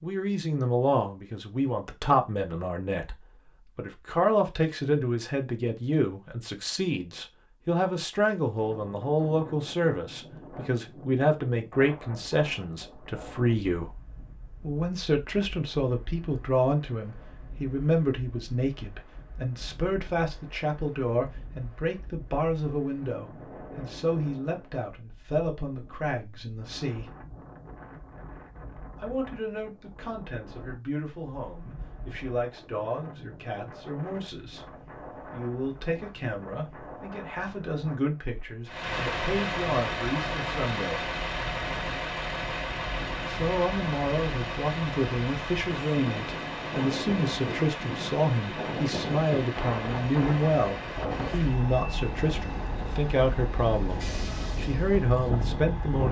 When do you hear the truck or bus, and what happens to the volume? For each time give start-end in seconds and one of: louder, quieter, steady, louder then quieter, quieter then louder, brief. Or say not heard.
38.6-56.0 quieter.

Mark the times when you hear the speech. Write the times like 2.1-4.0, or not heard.
0.0-13.9, 14.6-27.1, 28.9-41.0, 43.2-56.0.